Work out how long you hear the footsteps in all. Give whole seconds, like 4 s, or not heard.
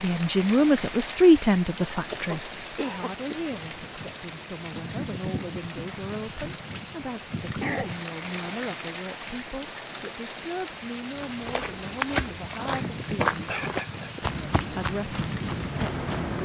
5 s.